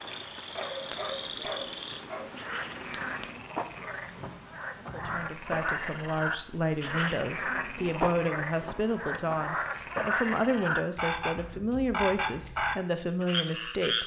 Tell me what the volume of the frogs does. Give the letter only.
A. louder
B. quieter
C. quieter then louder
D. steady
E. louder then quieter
A.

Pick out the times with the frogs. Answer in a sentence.
You can hear the frogs from 0.0 to 14.0 s.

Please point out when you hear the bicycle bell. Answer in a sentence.
The bicycle bell can be heard from 1.4 to 2.1 s and from 9.1 to 9.8 s.